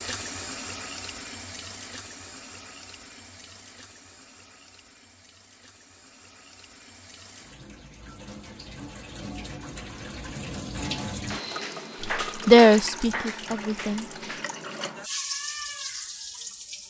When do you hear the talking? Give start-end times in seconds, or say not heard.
12.4-14.2.